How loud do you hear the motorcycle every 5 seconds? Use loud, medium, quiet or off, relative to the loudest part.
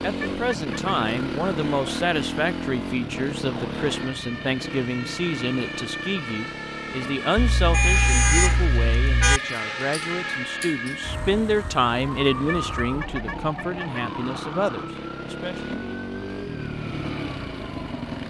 loud, medium, medium, loud.